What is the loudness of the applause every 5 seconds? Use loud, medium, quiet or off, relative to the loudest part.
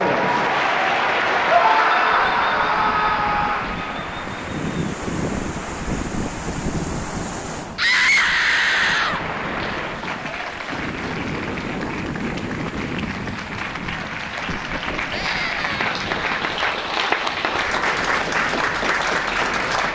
loud, medium, medium, loud.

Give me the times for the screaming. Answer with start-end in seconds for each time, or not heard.
1.4-3.7, 7.8-9.2, 15.1-15.9.